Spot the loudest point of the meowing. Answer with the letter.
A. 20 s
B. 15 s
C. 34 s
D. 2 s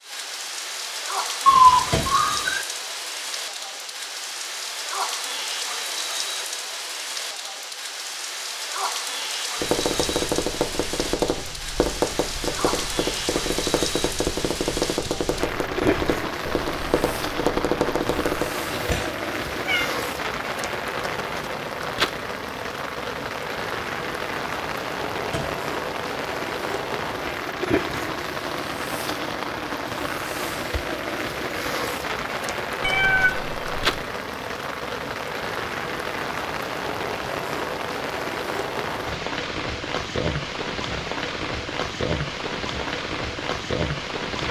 D.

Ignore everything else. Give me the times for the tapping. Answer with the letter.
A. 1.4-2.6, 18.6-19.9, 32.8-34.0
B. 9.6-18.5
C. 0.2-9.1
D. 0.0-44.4
B.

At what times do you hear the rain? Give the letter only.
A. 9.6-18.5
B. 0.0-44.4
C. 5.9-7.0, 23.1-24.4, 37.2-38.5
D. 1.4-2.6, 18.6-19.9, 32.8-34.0
B.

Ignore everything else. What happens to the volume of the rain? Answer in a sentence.
The volume of the rain stays about the same.